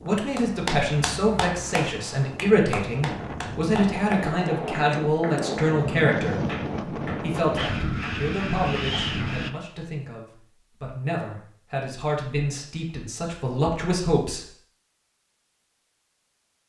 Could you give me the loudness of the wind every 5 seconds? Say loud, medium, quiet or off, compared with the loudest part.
medium, loud, off, off.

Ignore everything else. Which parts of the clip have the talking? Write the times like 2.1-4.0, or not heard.
0.1-14.4.